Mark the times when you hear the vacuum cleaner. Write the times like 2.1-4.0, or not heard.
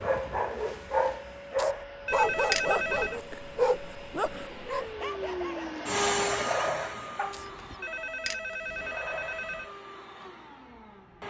0.0-11.2.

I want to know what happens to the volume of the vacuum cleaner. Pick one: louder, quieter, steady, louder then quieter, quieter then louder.
louder then quieter.